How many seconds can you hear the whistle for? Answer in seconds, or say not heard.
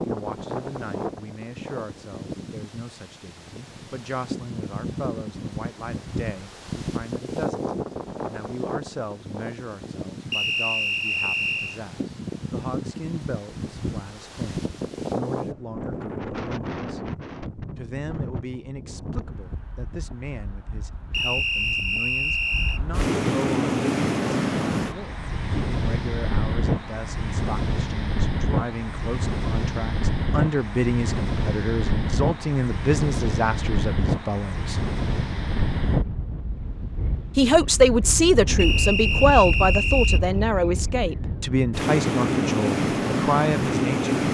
5 s.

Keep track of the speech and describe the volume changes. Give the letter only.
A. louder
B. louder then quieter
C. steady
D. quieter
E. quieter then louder
A.